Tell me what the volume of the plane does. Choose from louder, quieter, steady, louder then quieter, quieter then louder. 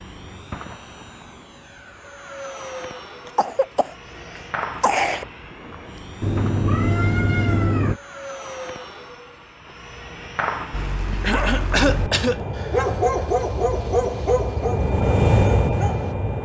louder.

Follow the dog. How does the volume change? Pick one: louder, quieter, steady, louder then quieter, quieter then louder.
louder then quieter.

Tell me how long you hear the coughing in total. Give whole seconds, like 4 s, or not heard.
3 s.